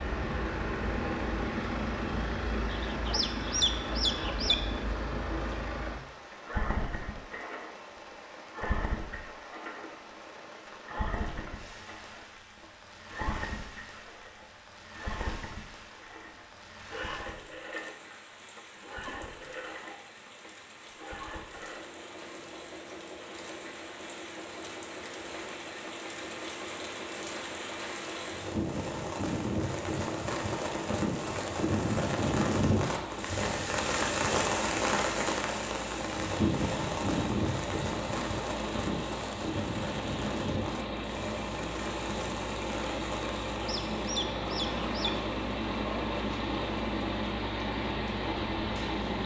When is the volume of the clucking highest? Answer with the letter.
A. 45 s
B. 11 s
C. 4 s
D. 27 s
C.